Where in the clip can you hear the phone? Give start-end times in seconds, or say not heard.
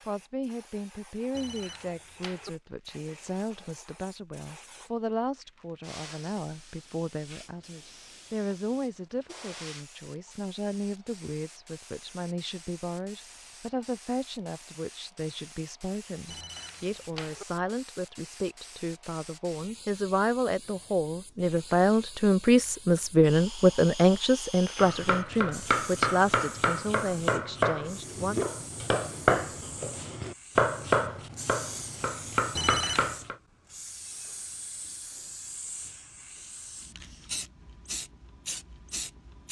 1.4-2.5, 16.2-17.4, 32.5-33.2.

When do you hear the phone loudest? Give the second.
33 s.